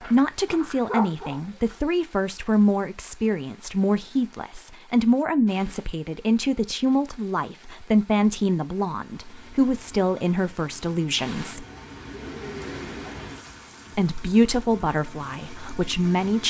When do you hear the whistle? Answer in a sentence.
The whistle can't be heard in this clip.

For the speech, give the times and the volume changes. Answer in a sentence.
The speech can be heard from 0.1 to 11.7 s, at a steady volume; and briefly from 13.9 to 16.4 s.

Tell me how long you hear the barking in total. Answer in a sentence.
You can hear the barking for 2 seconds altogether.